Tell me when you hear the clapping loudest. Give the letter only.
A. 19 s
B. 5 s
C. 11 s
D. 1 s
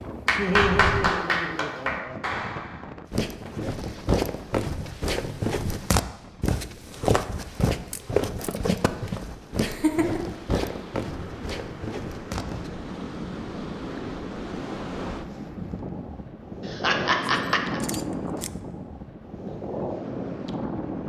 D.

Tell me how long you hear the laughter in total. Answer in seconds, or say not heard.
4 s.